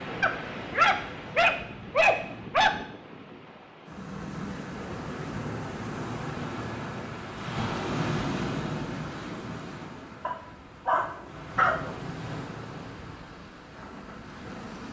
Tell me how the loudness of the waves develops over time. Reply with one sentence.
The loudness of the waves goes up, then down.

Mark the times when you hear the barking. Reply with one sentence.
The barking can be heard from 0.2 to 3.0 s and from 10.2 to 11.9 s.